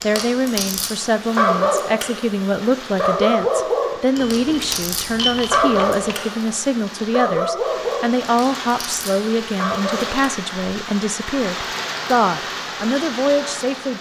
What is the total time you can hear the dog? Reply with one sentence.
The dog can be heard for 10 seconds in total.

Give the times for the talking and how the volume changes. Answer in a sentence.
You can hear the talking from 0.0 to 13.9 s, at a steady volume.